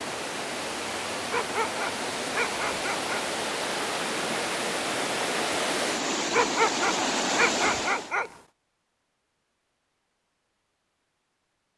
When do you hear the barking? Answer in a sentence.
The barking can be heard from 1.3 to 3.2 s and from 6.3 to 8.3 s.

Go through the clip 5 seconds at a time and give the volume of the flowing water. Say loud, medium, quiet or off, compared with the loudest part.
loud, loud, off.